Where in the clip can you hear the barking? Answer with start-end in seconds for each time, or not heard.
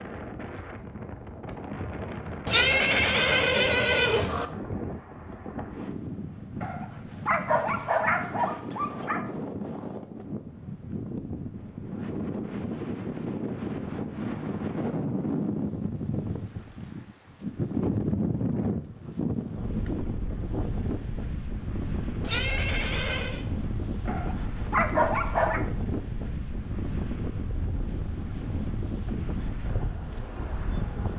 6.6-9.2, 24.1-25.6.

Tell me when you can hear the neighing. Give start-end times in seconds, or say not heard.
2.5-4.5, 22.2-23.4.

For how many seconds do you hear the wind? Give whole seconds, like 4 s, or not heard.
31 s.